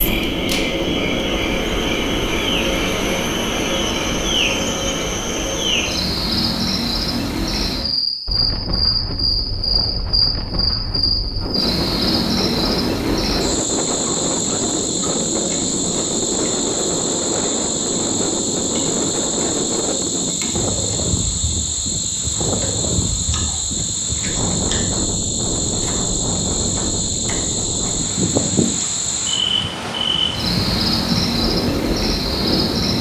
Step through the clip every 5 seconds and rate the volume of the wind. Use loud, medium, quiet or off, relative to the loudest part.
off, medium, loud, loud, loud, loud, loud.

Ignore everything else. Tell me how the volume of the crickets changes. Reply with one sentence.
The volume of the crickets stays about the same.